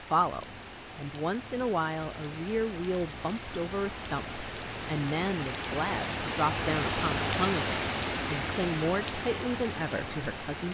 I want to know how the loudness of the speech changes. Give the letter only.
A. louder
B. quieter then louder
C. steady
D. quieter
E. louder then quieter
C.